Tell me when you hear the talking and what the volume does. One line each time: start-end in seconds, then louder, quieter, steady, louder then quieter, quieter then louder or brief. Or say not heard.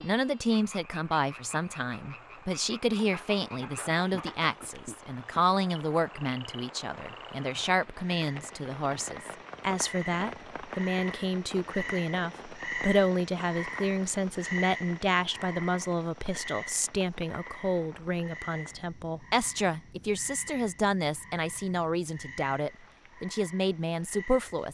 0.0-24.6 steady.